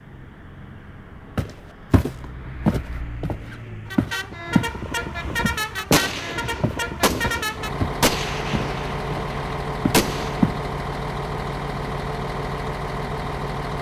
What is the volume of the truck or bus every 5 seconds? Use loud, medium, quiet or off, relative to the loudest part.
medium, loud, loud.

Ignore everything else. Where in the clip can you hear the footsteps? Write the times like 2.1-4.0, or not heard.
1.4-4.8, 5.4-10.6.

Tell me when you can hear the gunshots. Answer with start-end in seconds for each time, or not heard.
5.9-10.4.